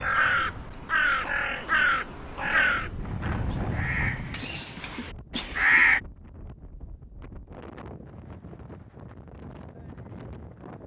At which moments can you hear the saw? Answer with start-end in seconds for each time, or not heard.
not heard.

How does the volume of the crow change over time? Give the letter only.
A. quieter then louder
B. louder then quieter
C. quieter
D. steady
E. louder
C.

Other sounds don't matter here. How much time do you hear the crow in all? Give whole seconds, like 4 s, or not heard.
6 s.